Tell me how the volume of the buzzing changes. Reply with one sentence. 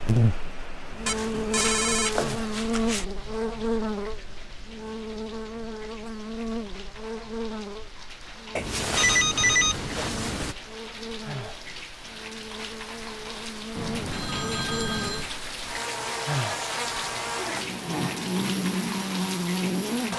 The volume of the buzzing goes down, then up.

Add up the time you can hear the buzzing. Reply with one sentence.
You can hear the buzzing for 20 seconds altogether.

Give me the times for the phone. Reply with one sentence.
The phone can be heard from 1.1 to 3.0 s, from 8.6 to 10.6 s and from 13.8 to 15.3 s.